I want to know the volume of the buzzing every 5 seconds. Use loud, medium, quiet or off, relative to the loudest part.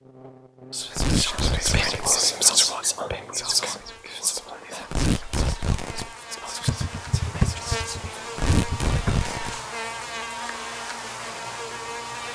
quiet, loud, loud.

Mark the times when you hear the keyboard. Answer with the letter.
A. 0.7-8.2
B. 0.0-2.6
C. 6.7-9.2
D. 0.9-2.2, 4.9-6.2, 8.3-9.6
C.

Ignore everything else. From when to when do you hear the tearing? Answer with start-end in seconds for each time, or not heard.
0.9-2.2, 4.9-6.2, 8.3-9.6.